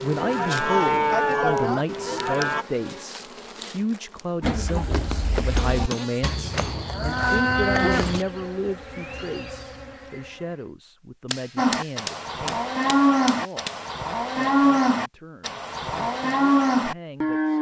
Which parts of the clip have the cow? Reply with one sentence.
The cow can be heard from 0.0 to 2.6 s, from 4.4 to 8.2 s and from 11.6 to 17.5 s.